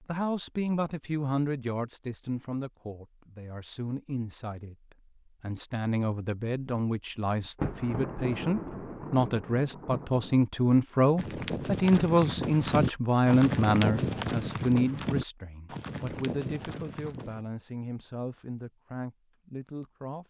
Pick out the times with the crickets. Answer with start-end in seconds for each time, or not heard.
not heard.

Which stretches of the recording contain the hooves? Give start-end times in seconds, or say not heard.
11.2-17.4.